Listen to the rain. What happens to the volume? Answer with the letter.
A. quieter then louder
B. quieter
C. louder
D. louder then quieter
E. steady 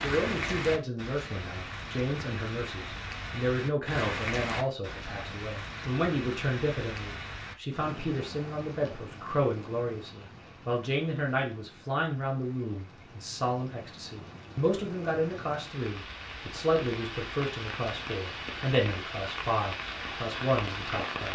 A.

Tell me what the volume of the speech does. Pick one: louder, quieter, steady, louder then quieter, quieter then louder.
steady.